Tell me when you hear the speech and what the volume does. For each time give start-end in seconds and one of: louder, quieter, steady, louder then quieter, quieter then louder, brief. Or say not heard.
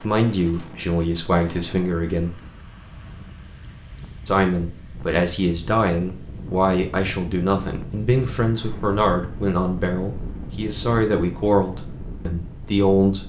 0.0-2.4 brief
4.2-13.2 steady.